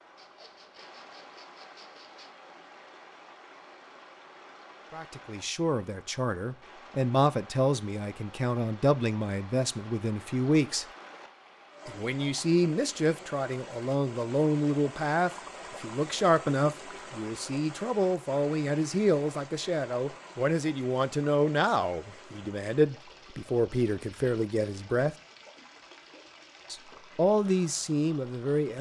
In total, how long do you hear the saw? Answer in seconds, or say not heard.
2 s.